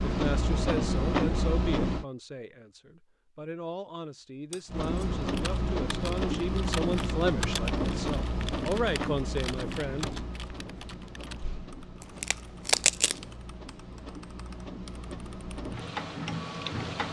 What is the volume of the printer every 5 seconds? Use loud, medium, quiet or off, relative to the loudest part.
loud, loud, quiet, medium.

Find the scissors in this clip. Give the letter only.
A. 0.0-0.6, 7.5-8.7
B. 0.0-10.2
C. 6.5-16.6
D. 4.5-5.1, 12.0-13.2
D.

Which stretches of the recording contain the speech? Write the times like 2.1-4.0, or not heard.
0.0-10.2.